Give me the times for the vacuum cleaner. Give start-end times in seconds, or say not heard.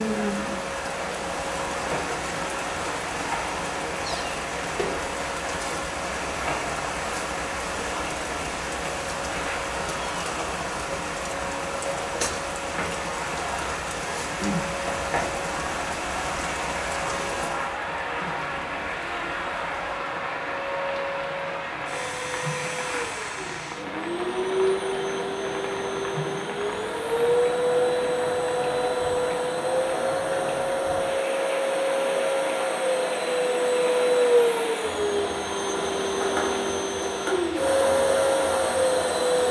0.0-39.4.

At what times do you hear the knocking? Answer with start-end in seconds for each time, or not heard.
not heard.